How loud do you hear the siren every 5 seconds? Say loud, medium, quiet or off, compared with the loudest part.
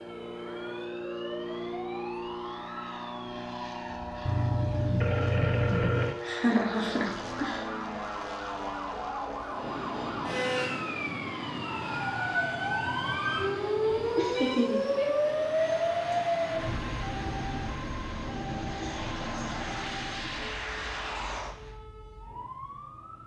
quiet, medium, loud, loud, quiet.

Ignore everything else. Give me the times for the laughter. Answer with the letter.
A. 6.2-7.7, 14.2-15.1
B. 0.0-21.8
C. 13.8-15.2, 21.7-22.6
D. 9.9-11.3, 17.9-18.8
A.